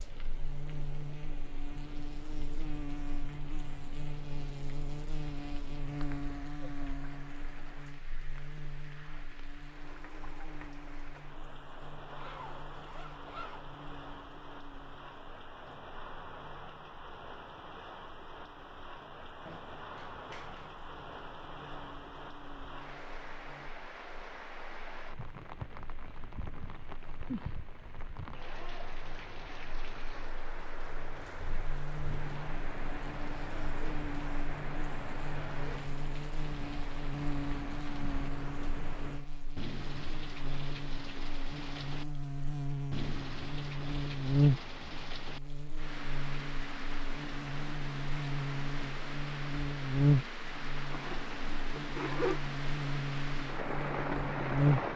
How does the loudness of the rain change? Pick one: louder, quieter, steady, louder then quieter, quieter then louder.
louder.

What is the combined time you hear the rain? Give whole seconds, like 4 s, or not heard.
55 s.